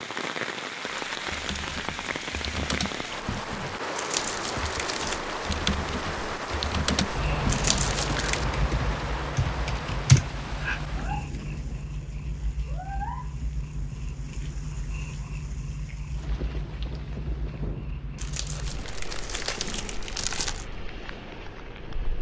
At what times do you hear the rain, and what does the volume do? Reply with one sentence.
You can hear the rain from 0.0 to 22.1 s, getting quieter.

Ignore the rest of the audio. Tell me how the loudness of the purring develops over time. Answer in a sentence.
The loudness of the purring goes down.